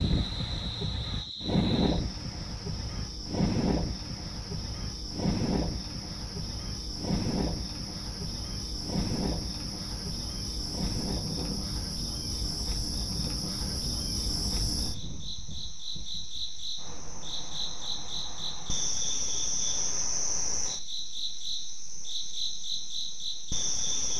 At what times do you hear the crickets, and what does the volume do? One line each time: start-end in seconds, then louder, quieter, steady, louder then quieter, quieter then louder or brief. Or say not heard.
0.0-24.1 louder.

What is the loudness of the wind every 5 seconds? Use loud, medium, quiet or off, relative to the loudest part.
loud, loud, medium, quiet, off.